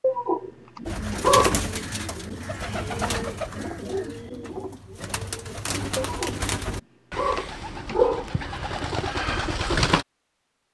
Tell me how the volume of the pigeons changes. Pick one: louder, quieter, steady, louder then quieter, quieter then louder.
steady.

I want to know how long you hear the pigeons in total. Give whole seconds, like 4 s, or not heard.
9 s.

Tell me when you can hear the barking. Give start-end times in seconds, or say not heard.
0.0-1.6, 6.0-6.4, 7.2-8.2.